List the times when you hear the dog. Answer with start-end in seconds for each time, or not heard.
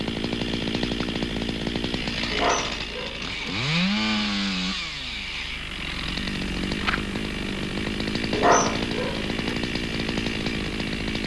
2.3-3.4, 8.3-9.5.